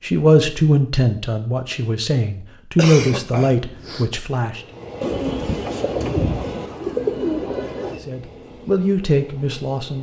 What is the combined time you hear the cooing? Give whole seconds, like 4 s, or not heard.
3 s.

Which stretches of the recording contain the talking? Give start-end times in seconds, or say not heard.
0.0-4.6, 7.9-9.9.